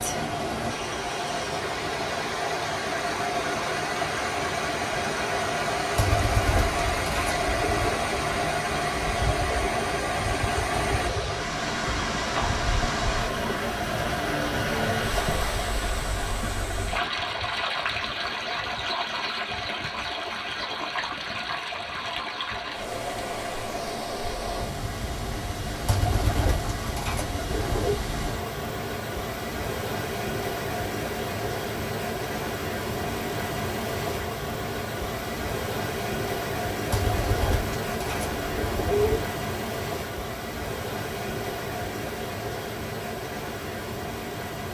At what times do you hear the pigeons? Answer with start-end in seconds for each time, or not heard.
6.0-8.0, 25.9-28.0, 36.9-39.2.